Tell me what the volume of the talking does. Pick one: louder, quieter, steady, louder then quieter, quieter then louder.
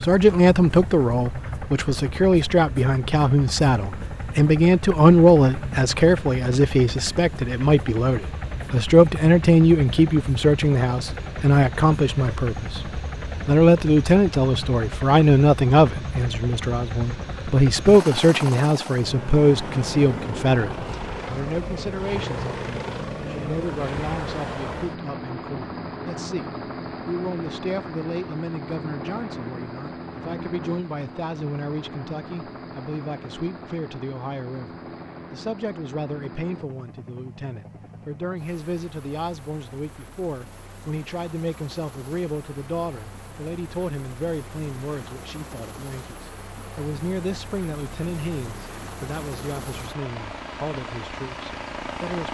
quieter.